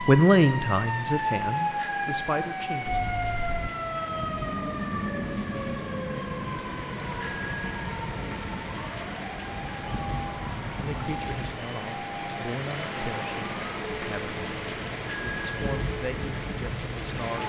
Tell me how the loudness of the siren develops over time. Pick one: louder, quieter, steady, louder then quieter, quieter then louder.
quieter.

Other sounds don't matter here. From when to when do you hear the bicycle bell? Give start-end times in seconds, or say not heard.
1.8-3.7, 7.2-8.0, 15.1-15.8.